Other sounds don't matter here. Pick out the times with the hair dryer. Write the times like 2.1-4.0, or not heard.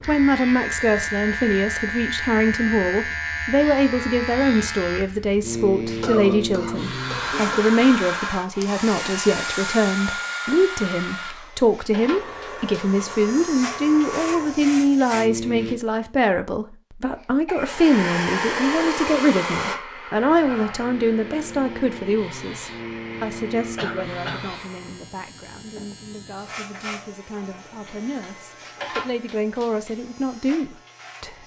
6.8-14.8, 17.6-25.1.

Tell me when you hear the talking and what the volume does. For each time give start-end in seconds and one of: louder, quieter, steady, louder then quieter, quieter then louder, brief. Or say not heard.
0.1-31.4 quieter.